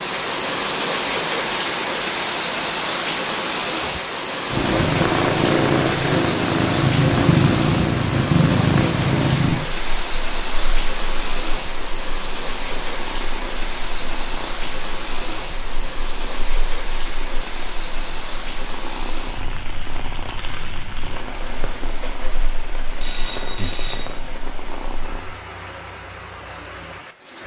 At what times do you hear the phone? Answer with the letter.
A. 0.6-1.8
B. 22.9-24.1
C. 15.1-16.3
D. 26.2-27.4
B.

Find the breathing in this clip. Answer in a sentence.
The breathing can't be heard in this clip.